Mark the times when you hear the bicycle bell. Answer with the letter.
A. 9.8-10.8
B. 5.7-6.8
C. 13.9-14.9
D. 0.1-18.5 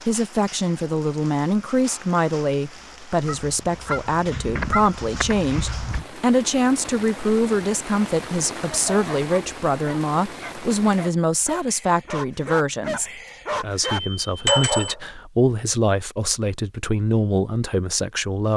C.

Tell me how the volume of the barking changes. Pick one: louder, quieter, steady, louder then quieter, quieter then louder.
louder.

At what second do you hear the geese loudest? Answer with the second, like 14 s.
5 s.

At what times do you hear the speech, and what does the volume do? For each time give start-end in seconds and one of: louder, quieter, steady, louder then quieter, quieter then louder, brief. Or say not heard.
0.1-18.5 steady.